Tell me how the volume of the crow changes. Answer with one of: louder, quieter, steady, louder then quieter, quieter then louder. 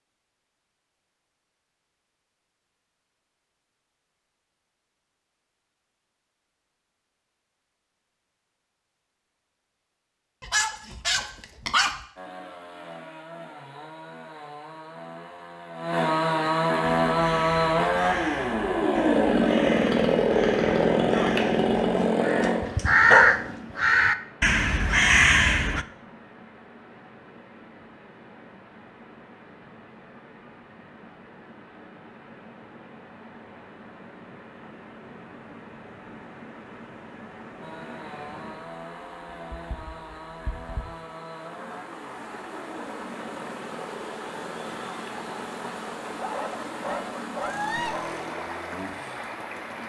louder.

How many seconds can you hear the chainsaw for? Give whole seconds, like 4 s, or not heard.
24 s.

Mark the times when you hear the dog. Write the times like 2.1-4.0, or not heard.
10.4-11.9, 21.8-23.5, 46.1-48.2.